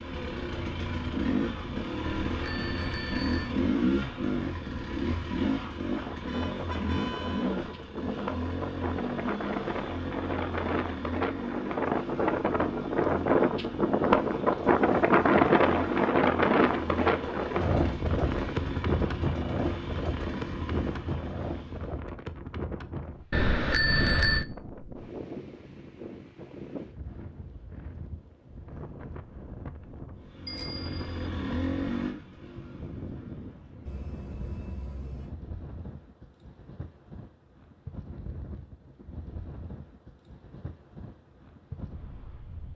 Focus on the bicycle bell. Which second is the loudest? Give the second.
24 s.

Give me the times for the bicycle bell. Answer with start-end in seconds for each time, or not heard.
2.2-3.5, 23.3-24.4, 30.4-31.2.